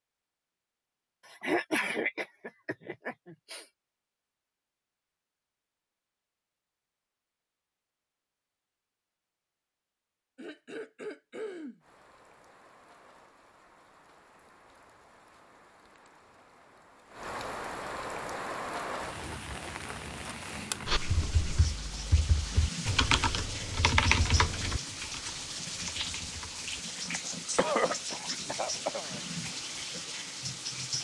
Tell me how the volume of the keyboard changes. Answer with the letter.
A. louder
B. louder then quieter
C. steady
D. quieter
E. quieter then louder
B.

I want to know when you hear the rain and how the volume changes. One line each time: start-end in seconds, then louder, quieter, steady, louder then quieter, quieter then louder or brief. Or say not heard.
11.8-30.9 louder.